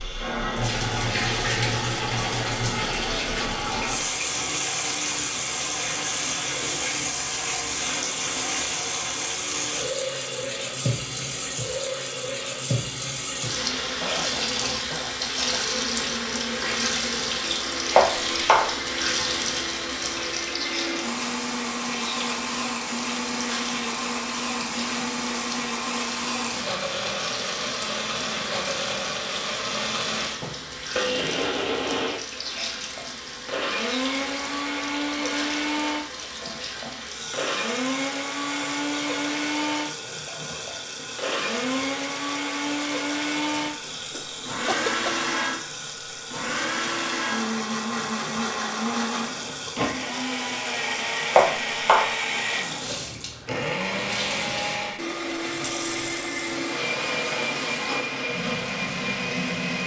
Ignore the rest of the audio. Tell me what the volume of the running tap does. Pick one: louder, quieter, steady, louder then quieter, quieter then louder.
quieter.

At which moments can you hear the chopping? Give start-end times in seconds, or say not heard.
17.9-18.6, 51.3-52.0.